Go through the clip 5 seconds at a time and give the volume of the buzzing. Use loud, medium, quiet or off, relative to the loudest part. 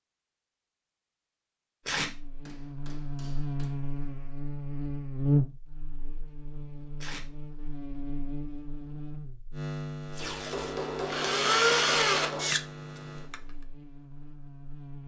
loud, loud, medium.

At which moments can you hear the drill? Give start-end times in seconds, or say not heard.
11.1-13.3.